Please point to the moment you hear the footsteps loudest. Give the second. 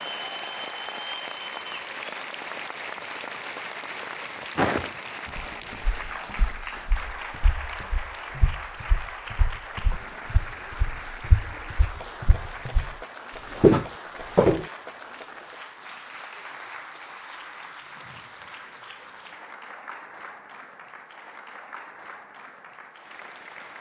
14 s.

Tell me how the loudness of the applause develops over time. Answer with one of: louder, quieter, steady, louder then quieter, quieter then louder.
quieter.